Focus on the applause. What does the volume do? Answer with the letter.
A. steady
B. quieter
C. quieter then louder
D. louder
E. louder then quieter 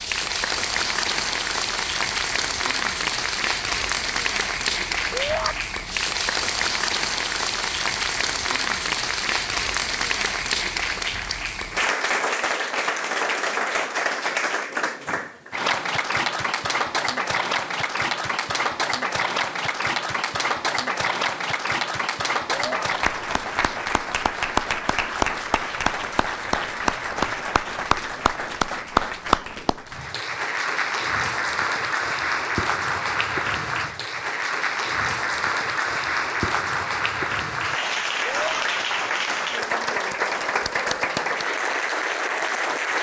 A.